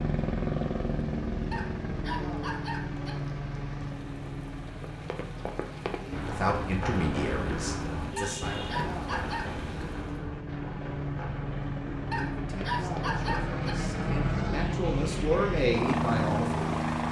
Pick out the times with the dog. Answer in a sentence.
You can hear the dog from 1.5 to 3.1 s, from 8.2 to 9.5 s and from 12.1 to 13.8 s.